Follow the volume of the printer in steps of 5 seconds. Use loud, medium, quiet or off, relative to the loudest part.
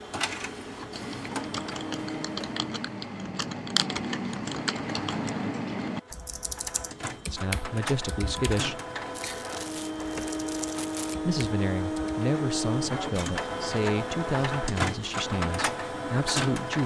medium, medium, loud, loud.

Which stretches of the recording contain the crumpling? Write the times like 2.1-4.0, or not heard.
9.1-11.2.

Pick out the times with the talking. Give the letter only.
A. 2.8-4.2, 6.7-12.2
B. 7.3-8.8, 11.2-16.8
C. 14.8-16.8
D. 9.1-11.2
B.